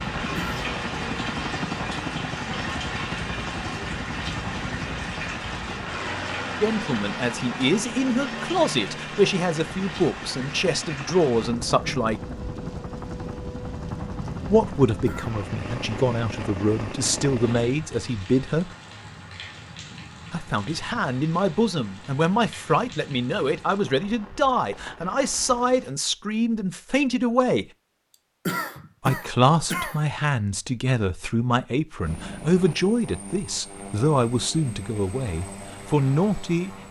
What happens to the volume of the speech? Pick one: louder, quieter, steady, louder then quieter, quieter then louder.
steady.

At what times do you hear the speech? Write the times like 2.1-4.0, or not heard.
6.6-12.2, 14.5-18.8, 20.3-27.6, 29.0-36.8.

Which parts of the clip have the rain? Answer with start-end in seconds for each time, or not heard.
0.0-25.9.